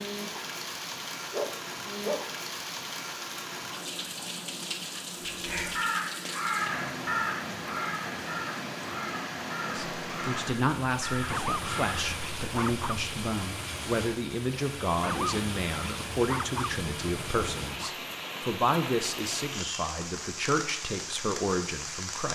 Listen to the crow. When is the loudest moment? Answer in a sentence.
The loudest moment of the crow is at 7 seconds.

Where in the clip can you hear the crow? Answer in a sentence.
The crow can be heard from 5.3 to 12.2 s.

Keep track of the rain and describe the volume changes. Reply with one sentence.
The loudness of the rain stays about the same.